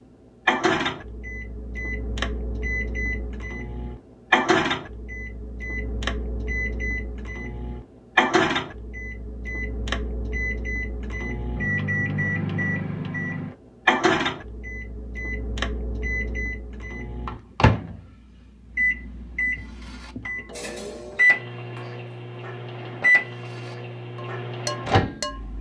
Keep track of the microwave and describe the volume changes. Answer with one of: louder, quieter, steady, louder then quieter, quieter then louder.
steady.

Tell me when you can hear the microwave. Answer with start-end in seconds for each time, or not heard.
0.5-25.5.